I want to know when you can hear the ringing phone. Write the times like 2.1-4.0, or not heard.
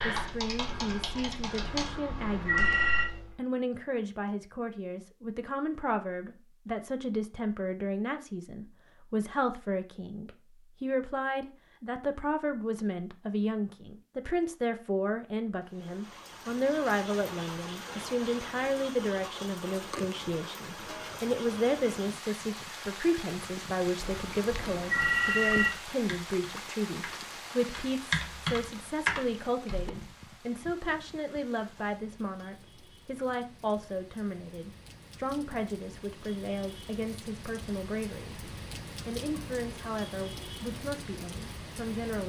1.6-3.1, 23.9-25.7.